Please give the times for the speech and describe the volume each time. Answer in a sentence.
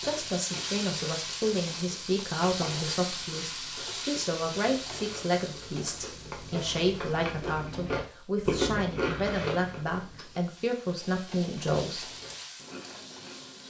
You can hear the speech from 0.0 to 12.1 s, at a steady volume.